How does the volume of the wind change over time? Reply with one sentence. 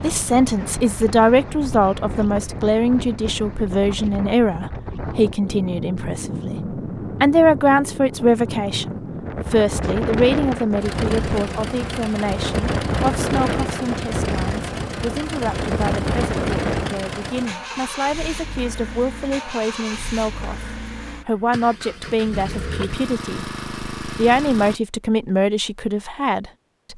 The loudness of the wind goes up.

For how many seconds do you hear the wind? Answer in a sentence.
You can hear the wind for 17 seconds altogether.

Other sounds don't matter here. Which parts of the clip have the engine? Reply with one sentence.
You can hear the engine from 10.8 to 24.8 s.